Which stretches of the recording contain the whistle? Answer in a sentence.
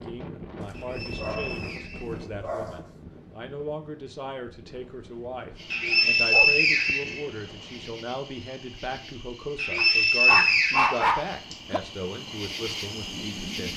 You can hear the whistle from 0.7 to 2.7 s, from 5.7 to 7.2 s and from 9.6 to 11.6 s.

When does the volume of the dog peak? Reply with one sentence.
The loudest moment of the dog is at 11 seconds.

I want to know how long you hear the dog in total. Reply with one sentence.
The dog can be heard for 5 seconds in total.